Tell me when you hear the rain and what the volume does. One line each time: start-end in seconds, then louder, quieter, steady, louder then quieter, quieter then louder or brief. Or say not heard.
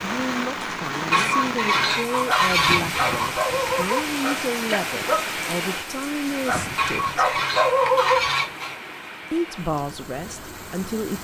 0.0-11.1 quieter.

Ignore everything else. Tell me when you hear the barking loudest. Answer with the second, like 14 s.
8 s.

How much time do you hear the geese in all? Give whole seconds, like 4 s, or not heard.
4 s.